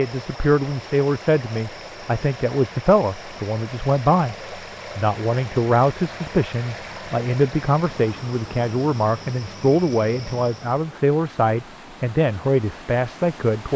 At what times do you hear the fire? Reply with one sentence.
You can't hear the fire here.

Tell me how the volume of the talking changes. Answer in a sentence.
The volume of the talking stays about the same.